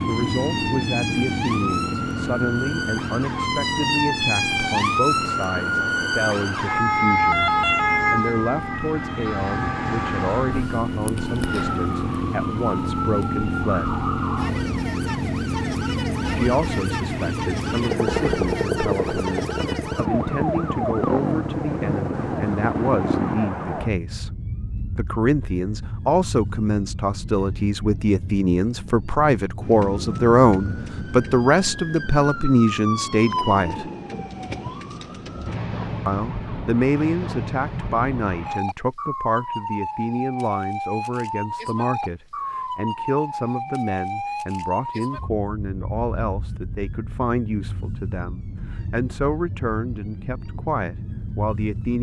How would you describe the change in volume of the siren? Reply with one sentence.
The loudness of the siren goes down.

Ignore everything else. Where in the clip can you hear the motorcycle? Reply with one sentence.
You can hear the motorcycle from 0.0 to 23.5 s.